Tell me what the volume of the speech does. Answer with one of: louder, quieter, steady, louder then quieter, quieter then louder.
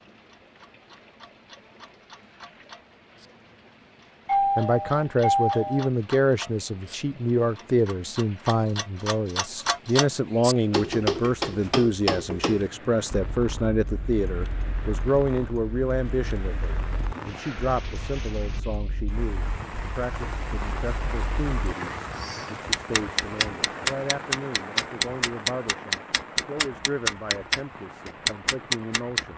quieter.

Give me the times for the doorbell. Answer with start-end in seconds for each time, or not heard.
4.2-5.9.